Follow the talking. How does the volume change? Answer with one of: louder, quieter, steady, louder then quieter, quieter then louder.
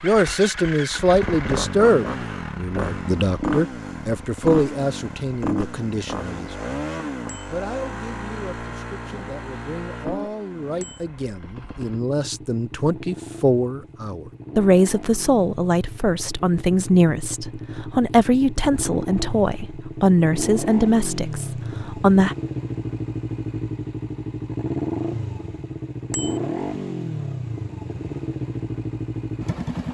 quieter then louder.